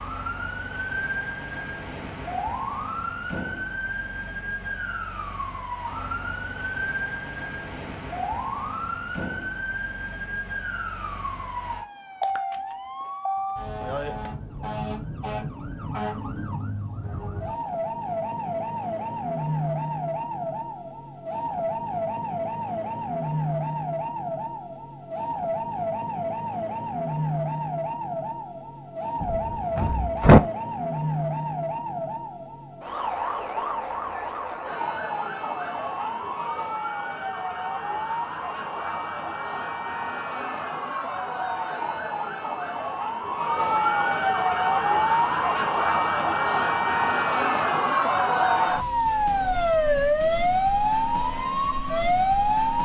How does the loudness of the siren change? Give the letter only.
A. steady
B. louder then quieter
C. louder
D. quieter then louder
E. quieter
C.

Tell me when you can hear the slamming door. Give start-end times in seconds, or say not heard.
29.2-30.4.